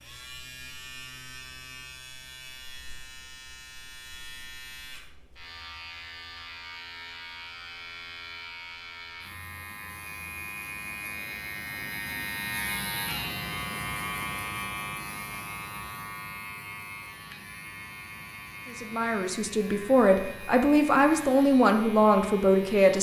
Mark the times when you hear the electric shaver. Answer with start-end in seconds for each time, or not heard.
0.0-22.9.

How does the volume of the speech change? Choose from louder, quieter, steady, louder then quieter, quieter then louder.
louder.